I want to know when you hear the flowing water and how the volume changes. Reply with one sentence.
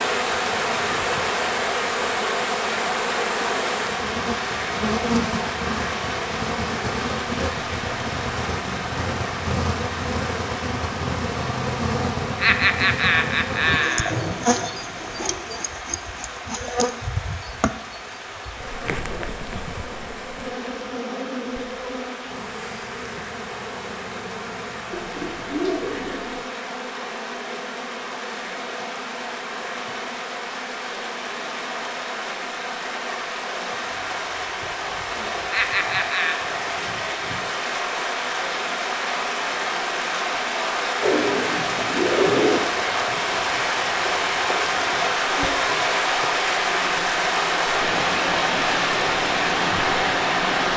The flowing water can be heard from 0.0 to 50.7 s, getting quieter then louder.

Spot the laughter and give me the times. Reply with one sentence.
You can hear the laughter from 12.3 to 14.2 s and from 35.5 to 36.4 s.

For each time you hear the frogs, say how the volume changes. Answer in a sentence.
You can't hear the frogs here.